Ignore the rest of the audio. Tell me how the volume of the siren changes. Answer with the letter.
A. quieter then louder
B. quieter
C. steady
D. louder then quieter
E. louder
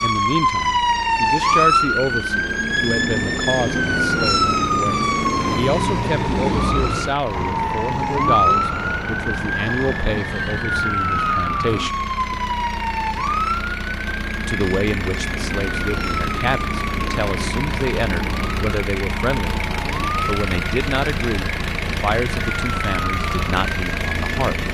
B.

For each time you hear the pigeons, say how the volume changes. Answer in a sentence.
You can't hear the pigeons here.